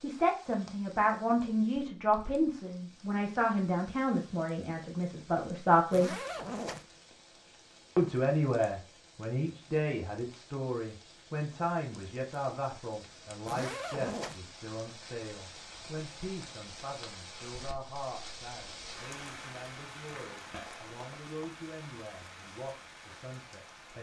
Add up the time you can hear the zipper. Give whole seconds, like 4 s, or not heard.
2 s.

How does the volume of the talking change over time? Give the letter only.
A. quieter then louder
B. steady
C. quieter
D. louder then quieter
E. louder
C.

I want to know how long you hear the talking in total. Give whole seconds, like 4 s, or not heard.
22 s.